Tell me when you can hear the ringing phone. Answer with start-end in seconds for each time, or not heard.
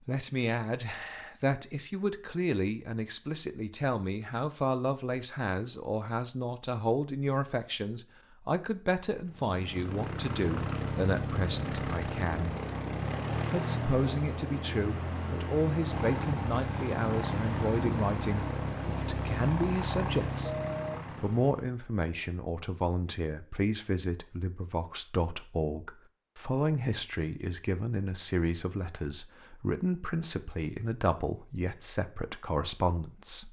20.4-20.9.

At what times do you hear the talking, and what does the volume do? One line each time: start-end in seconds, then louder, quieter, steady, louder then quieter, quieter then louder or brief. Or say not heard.
0.1-12.6 steady
13.5-20.5 steady
21.1-33.4 steady.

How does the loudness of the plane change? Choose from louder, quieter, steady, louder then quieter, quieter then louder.
steady.